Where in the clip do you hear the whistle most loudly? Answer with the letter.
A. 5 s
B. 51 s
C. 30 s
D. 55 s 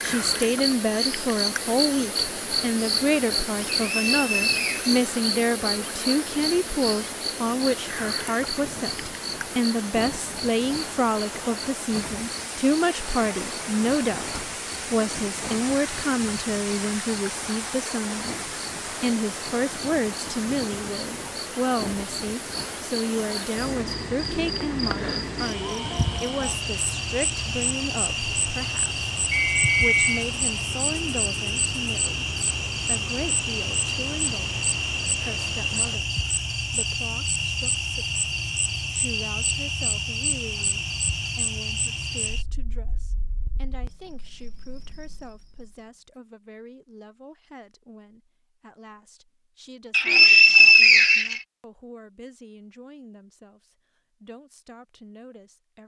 B.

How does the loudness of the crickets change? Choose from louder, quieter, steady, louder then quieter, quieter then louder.
quieter then louder.